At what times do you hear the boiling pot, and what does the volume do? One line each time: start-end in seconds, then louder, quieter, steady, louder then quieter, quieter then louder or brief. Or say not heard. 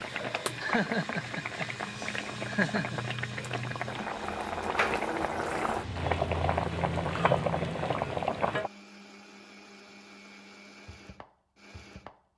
0.0-8.7 louder.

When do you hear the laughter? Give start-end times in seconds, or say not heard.
0.6-3.0.